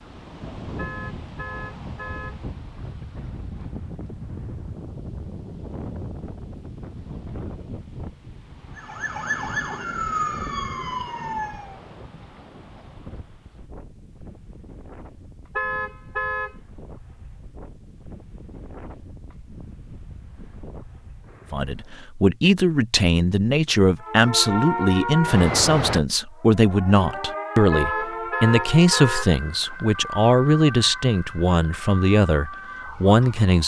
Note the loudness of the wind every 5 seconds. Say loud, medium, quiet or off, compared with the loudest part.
loud, loud, medium, medium, medium, off, off.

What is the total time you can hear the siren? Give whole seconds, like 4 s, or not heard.
13 s.